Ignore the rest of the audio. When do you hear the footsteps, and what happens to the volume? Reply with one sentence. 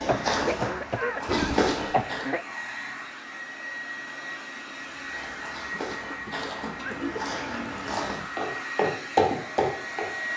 You can hear the footsteps briefly from 0.0 to 2.2 s; and from 4.9 to 10.1 s, getting louder.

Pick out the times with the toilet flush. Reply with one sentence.
You can hear the toilet flush from 1.2 to 1.9 s and from 6.7 to 8.0 s.